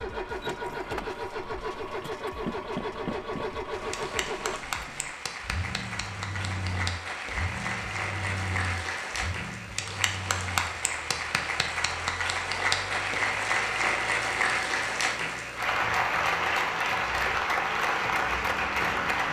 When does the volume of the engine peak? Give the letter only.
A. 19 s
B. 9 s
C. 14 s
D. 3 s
D.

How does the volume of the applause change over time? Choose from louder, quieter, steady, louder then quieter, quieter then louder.
louder.